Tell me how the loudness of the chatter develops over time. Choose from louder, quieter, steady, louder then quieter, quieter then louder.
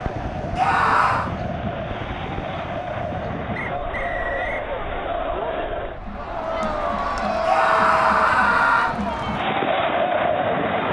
louder.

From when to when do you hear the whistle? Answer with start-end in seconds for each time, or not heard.
3.5-4.7.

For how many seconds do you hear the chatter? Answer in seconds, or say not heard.
11 s.